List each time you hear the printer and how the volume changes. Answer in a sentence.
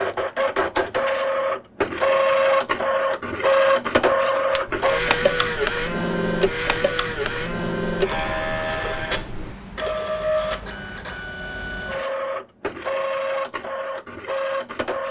The printer can be heard from 0.0 to 15.0 s, getting quieter.